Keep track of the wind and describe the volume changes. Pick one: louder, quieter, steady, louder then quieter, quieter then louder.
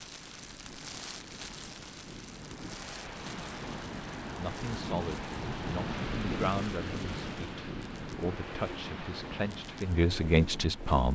louder then quieter.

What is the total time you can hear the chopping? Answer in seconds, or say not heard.
not heard.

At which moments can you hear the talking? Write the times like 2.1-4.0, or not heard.
4.3-11.1.